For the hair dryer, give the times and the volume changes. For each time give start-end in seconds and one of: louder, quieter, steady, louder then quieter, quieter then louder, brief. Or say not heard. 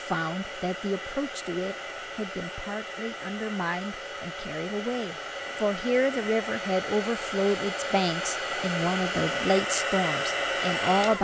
0.0-11.1 louder.